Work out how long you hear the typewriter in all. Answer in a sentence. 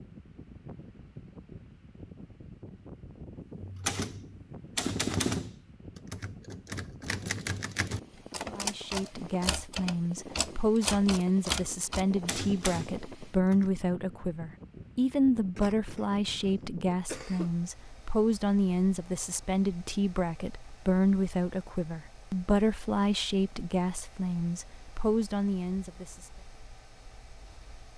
You can hear the typewriter for 10 seconds altogether.